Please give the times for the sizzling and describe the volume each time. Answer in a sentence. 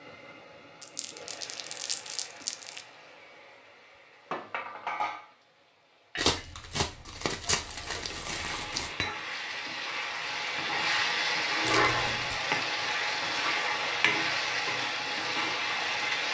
You can hear the sizzling from 0.0 to 16.2 s, getting louder.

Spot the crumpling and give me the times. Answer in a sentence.
You can hear the crumpling from 0.8 to 2.8 s, from 6.2 to 8.9 s and from 11.6 to 12.4 s.